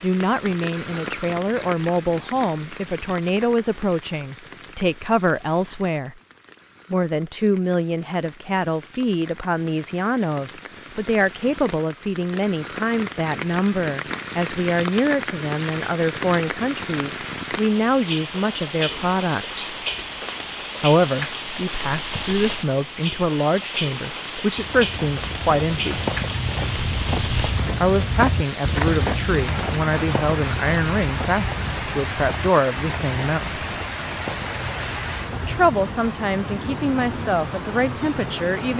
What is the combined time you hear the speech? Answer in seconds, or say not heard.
33 s.